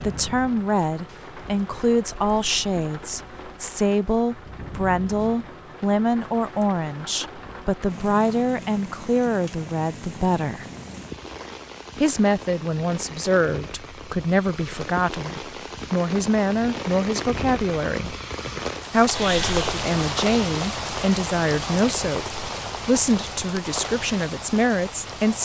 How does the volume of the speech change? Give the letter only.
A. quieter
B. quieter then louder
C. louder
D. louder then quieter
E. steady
E.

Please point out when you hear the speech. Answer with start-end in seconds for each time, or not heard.
0.0-10.7, 12.0-18.1, 18.9-25.4.